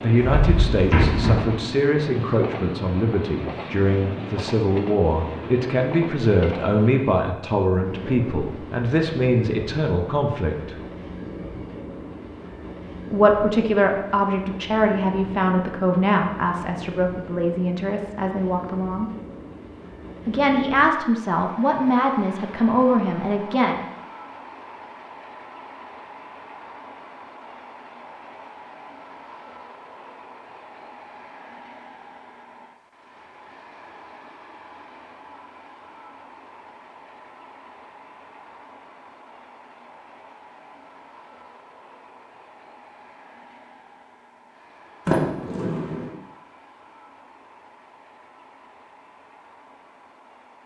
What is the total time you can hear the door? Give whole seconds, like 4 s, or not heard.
2 s.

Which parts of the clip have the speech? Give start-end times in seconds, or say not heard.
0.0-10.8, 13.1-19.1, 20.2-23.8.